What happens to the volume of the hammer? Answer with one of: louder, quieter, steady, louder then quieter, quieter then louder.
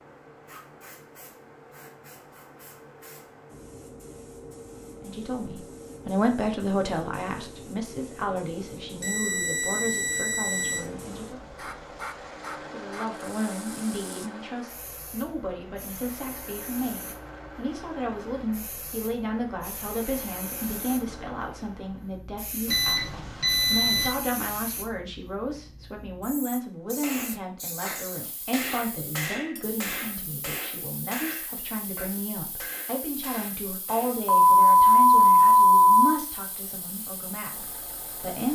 quieter.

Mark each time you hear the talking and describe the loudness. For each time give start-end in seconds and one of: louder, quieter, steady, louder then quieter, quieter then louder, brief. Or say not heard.
5.0-11.4 quieter
12.7-38.5 steady.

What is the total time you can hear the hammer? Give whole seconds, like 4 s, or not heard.
7 s.